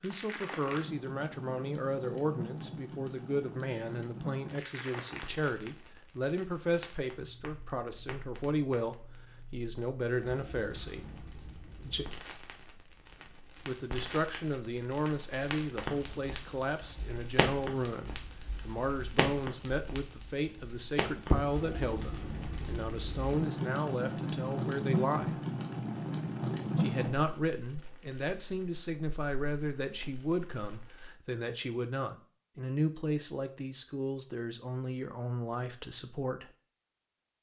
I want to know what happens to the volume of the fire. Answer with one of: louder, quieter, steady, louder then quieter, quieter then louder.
quieter then louder.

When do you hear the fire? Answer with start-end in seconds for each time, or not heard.
0.0-31.1.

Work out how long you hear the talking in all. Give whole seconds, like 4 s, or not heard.
34 s.